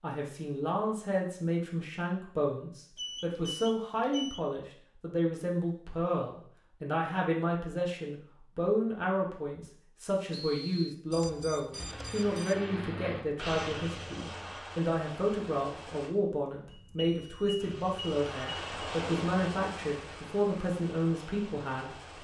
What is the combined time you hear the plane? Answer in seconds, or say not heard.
9 s.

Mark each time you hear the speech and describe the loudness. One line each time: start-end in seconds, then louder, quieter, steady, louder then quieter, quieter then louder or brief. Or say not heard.
0.0-21.9 steady.